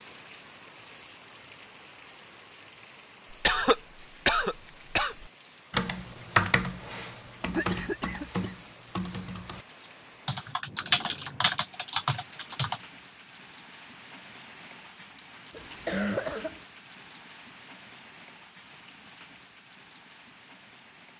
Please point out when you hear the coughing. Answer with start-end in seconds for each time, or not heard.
3.3-5.3, 7.5-8.4, 15.5-16.6.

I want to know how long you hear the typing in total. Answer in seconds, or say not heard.
7 s.